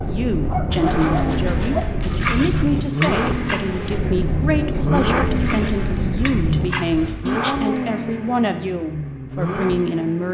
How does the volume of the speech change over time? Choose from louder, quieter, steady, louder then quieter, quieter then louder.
steady.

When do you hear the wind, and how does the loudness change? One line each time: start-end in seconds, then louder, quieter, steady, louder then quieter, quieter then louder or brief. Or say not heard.
0.0-7.2 steady.